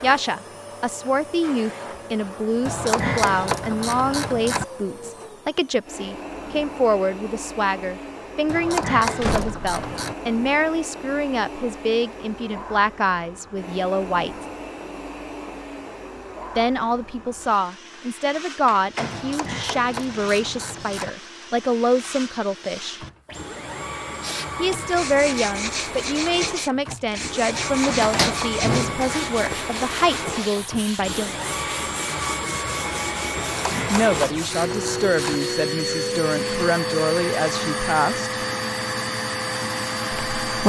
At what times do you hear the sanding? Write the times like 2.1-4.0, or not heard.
24.1-35.6.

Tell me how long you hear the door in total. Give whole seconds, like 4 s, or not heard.
3 s.